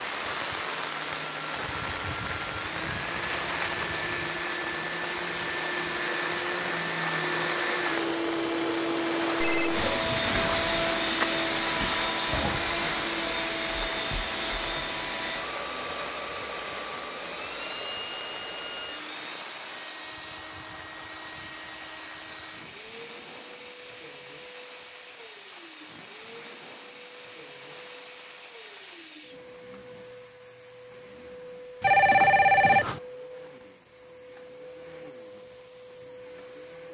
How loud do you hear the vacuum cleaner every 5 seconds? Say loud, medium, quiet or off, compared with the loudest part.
medium, loud, loud, medium, quiet, quiet, quiet, quiet.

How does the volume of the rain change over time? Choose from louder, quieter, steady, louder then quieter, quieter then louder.
quieter.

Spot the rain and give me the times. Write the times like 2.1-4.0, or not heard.
0.0-29.4.